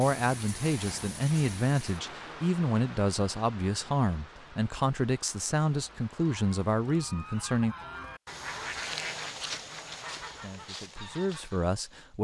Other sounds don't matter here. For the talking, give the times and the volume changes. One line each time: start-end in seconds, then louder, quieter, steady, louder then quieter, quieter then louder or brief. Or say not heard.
0.0-7.8 steady
10.3-12.2 brief.